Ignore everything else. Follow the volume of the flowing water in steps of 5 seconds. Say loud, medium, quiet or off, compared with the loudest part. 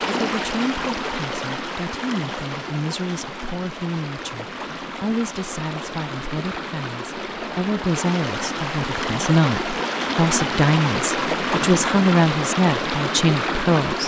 medium, medium, loud.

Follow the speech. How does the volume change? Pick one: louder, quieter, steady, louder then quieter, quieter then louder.
louder.